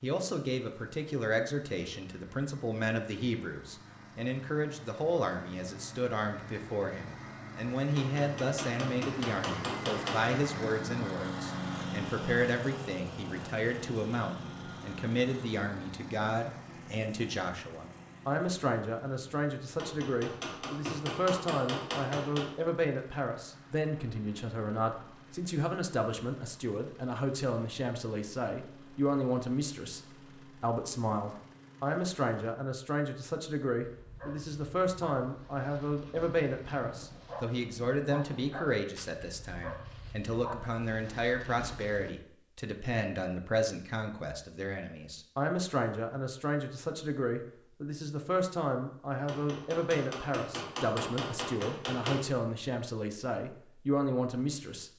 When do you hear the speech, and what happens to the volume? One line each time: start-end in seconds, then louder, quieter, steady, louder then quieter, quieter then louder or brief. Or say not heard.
0.0-54.9 steady.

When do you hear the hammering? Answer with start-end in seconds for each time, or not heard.
8.0-10.3, 19.8-22.5, 49.2-52.2.